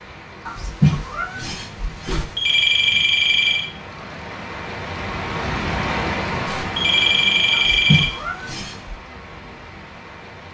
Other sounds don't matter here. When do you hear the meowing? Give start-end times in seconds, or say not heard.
0.5-2.2, 7.5-8.9.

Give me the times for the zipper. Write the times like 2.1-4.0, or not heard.
not heard.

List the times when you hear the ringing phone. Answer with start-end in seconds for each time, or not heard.
2.0-3.7, 6.5-8.2.